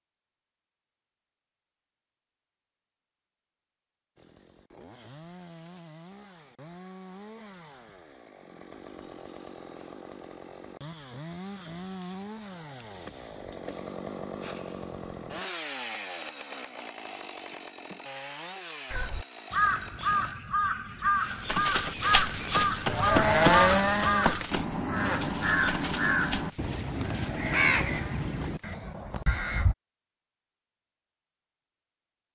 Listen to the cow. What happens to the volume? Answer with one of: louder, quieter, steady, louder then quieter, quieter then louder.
louder then quieter.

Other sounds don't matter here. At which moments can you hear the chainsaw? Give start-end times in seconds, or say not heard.
4.2-20.4.